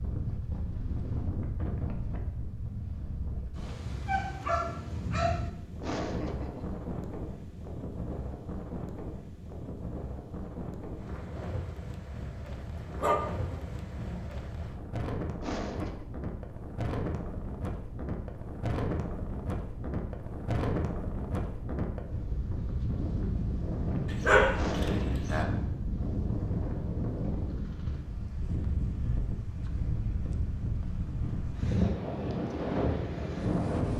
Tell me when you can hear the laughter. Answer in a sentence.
The laughter can be heard from 5.8 to 6.8 s, from 15.4 to 16.1 s and from 24.6 to 25.2 s.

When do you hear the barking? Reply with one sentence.
The barking can be heard from 4.0 to 5.5 s, from 12.2 to 14.2 s and from 24.1 to 25.4 s.